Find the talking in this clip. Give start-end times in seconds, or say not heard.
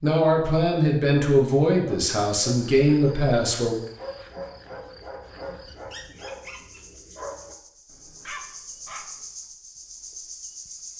0.0-3.8.